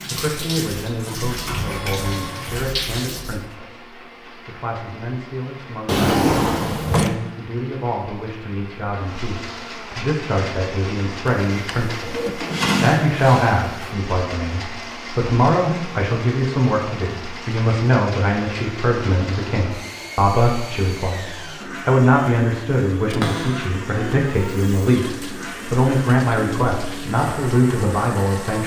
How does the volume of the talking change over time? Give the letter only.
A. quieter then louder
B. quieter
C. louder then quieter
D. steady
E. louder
E.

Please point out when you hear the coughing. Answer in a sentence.
The coughing can't be heard in this clip.